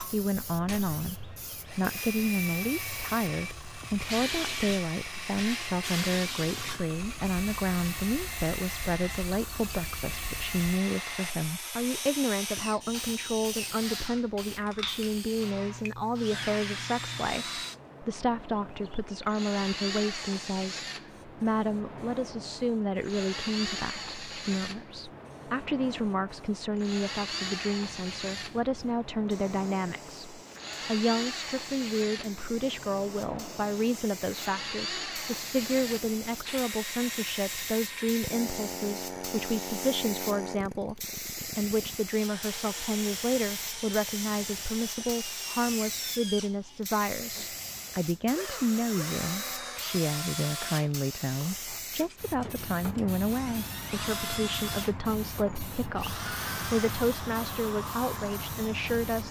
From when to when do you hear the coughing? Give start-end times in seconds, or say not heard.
not heard.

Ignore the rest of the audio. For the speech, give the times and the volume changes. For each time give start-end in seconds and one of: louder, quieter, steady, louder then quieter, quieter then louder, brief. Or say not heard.
0.0-59.2 steady.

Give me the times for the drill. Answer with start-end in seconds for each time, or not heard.
0.0-59.2.